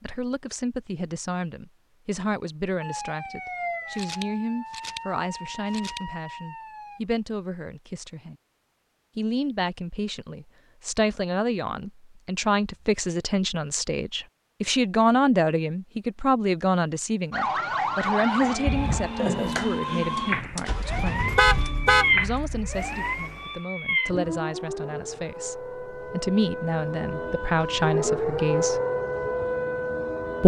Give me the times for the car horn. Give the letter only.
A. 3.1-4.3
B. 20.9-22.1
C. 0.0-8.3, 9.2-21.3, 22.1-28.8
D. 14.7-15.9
B.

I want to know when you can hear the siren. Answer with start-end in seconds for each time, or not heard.
2.8-7.0, 17.3-30.4.